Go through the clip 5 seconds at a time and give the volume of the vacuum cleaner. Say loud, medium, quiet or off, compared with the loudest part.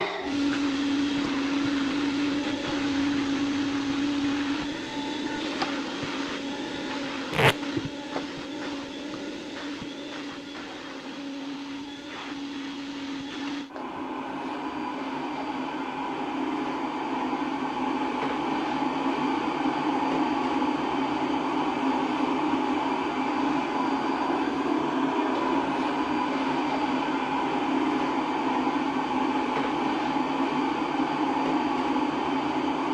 loud, medium, medium, loud, loud, loud, loud.